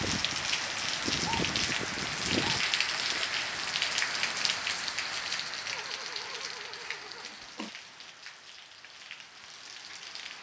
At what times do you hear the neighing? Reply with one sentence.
The neighing can be heard from 5.7 to 7.7 s.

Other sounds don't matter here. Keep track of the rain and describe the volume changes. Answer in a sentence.
The volume of the rain goes down.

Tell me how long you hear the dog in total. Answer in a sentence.
You can hear the dog for 3 seconds altogether.